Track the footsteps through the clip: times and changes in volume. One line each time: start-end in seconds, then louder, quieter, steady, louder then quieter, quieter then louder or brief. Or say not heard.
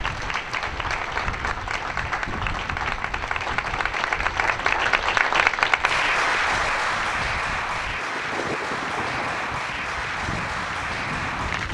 not heard.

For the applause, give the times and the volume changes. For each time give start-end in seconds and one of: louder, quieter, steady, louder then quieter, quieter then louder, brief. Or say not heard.
0.0-11.6 louder then quieter.